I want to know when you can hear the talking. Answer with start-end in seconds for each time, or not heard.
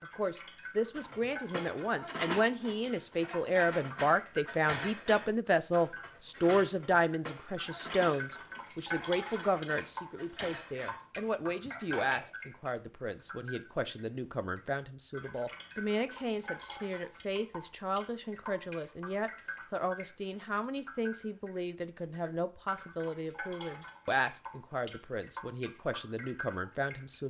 0.0-27.2.